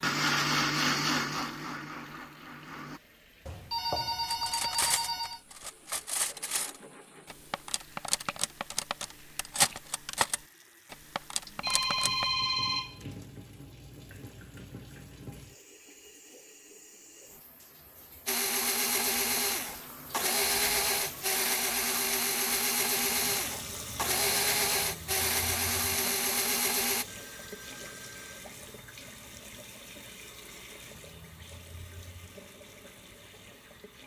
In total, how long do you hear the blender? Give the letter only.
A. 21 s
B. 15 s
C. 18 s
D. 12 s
D.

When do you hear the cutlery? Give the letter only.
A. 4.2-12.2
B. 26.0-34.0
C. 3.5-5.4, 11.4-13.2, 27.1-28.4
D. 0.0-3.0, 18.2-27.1
A.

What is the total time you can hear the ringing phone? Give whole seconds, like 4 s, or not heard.
5 s.